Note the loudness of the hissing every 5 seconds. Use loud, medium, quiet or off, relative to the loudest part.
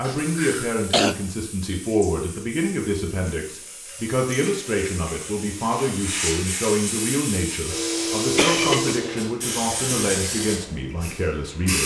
quiet, loud, loud.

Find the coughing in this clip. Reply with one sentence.
You can hear the coughing from 0.1 to 1.2 s and from 8.3 to 8.9 s.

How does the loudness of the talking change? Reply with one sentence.
The volume of the talking stays about the same.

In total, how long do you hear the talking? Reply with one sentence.
The talking can be heard for 12 seconds in total.